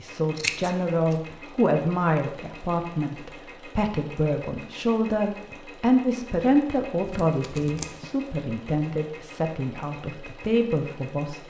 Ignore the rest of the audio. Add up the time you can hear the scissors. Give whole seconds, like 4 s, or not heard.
2 s.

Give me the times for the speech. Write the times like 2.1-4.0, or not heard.
0.0-11.4.